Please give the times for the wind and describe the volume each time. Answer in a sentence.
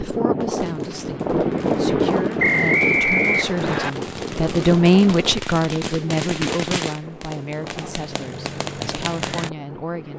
The wind can be heard from 0.0 to 10.1 s, getting quieter.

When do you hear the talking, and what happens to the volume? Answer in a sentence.
The talking can be heard from 0.0 to 10.1 s, getting louder then quieter.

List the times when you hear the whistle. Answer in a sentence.
The whistle can be heard from 2.4 to 3.9 s.